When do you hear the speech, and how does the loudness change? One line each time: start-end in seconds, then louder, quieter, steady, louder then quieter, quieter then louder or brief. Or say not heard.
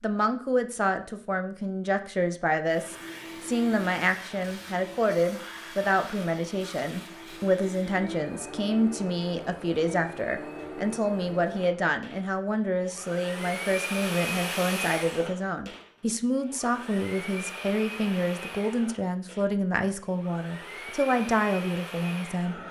0.0-22.6 steady.